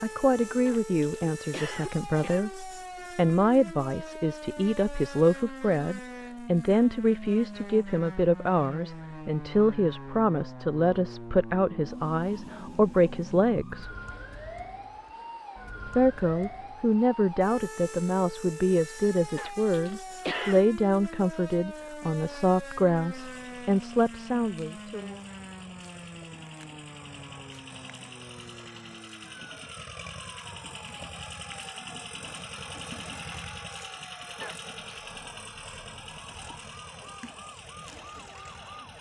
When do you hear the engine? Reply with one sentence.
The engine can be heard from 23.1 to 38.9 s.